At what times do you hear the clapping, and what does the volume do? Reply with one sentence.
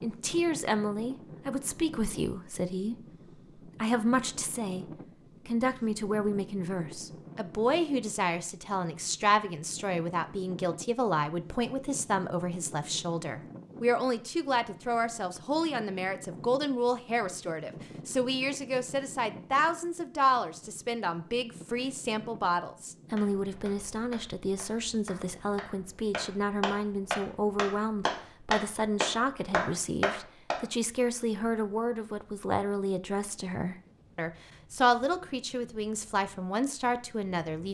The clapping can be heard from 23.1 to 30.6 s, getting louder.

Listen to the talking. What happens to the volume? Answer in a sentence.
The volume of the talking stays about the same.